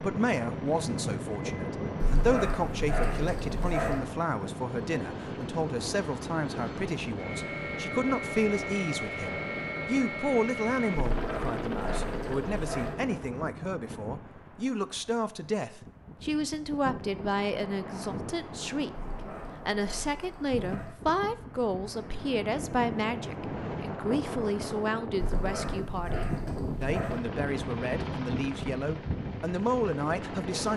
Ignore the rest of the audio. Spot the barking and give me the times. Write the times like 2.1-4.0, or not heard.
2.0-4.0, 11.1-12.9, 18.9-20.9, 25.2-27.2.